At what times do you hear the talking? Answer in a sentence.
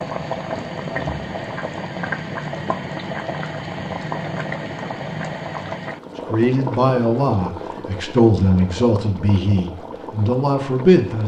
You can hear the talking from 6.3 to 11.2 s.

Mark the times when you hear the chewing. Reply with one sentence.
You can't hear the chewing here.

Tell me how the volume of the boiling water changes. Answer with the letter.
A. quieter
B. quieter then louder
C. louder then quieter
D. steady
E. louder
A.